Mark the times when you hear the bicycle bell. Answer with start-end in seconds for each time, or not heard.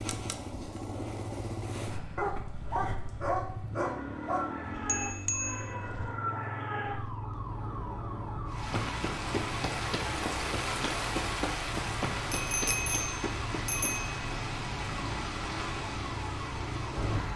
4.8-6.2, 12.3-14.2.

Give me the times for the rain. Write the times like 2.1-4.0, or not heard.
8.4-17.3.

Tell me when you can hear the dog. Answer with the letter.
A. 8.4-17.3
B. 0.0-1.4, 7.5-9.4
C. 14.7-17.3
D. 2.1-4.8
D.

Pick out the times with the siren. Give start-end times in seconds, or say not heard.
3.8-17.3.